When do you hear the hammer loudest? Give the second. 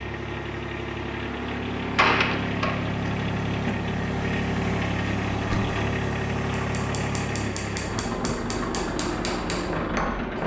10 s.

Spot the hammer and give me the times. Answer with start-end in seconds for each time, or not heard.
6.7-10.4.